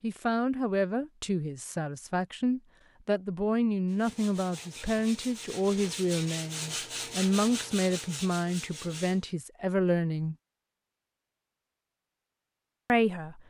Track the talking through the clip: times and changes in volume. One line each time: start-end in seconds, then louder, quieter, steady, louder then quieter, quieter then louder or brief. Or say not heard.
0.0-10.3 steady
12.8-13.4 brief.